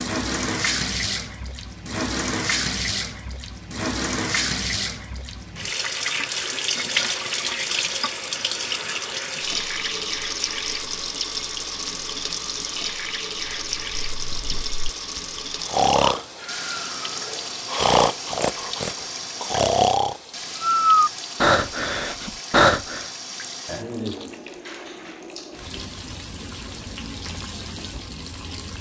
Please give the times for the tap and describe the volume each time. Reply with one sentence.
The tap can be heard from 0.0 to 28.7 s, getting quieter.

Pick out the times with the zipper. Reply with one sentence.
The zipper can't be heard in this clip.